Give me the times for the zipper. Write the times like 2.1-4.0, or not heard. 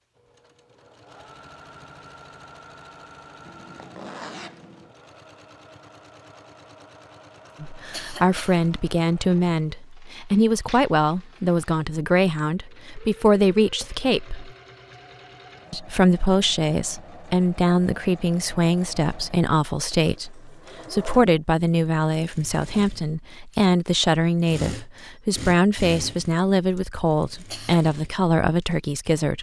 3.4-5.0.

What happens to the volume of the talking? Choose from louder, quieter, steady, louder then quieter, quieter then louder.
steady.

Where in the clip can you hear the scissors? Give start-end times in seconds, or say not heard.
not heard.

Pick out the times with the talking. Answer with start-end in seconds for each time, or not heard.
7.6-14.5, 15.7-29.3.